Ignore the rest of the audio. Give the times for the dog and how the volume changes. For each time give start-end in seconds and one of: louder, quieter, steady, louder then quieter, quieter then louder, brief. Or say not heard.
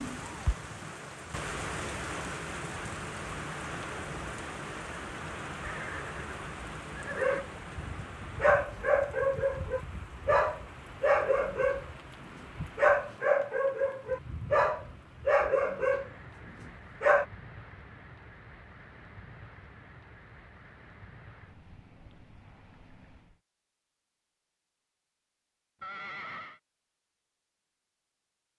7.1-17.2 steady.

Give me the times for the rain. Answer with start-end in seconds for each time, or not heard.
0.0-23.4.